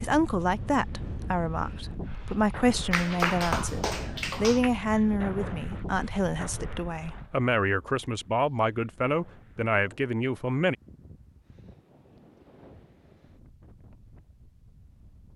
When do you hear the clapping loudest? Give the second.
3 s.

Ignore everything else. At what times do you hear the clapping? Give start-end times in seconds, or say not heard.
2.9-4.7.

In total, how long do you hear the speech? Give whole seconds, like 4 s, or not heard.
11 s.